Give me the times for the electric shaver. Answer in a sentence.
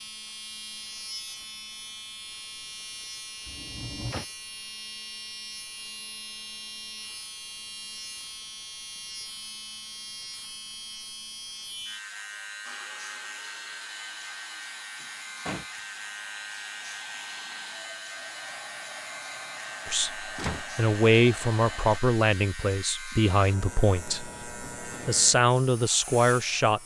The electric shaver can be heard from 0.0 to 26.8 s.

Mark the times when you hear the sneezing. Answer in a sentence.
The sneezing can't be heard in this clip.